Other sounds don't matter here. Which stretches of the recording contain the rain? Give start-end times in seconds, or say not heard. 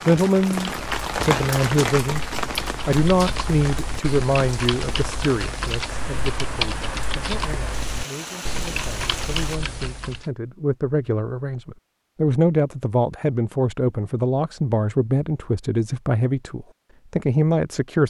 0.0-9.6.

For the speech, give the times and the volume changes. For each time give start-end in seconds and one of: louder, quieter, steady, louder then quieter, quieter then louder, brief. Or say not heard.
0.1-2.2 brief
2.9-18.0 quieter then louder.